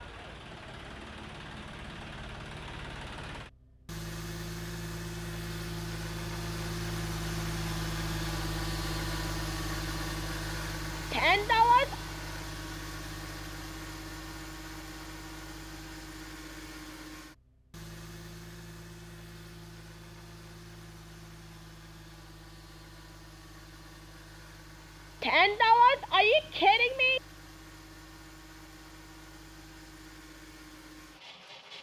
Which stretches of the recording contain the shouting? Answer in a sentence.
The shouting can be heard from 11.1 to 11.9 s and from 25.2 to 27.2 s.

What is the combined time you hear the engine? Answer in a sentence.
You can hear the engine for 32 seconds altogether.